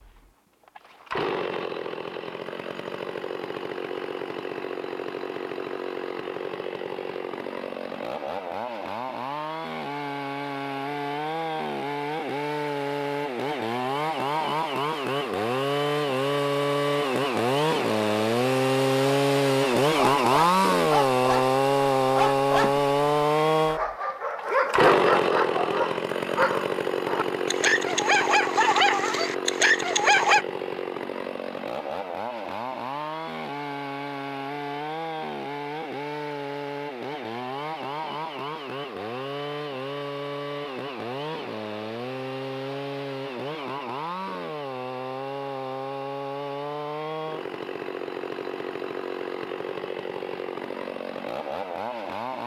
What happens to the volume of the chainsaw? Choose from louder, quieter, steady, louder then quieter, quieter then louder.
louder then quieter.